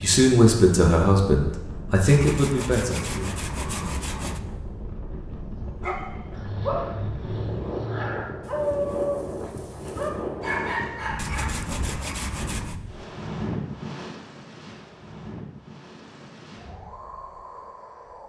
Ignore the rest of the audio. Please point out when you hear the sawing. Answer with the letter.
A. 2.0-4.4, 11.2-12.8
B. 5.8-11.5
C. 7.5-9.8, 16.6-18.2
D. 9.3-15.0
A.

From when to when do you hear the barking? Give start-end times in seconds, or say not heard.
5.8-11.5.